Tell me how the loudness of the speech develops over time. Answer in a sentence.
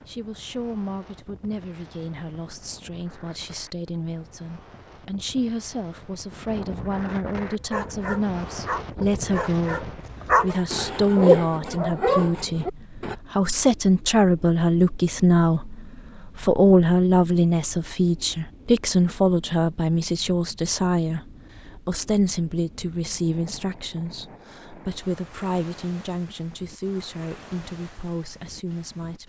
The volume of the speech goes up, then down.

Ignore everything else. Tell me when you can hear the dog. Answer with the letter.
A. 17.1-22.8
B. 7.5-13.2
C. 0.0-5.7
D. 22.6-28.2
B.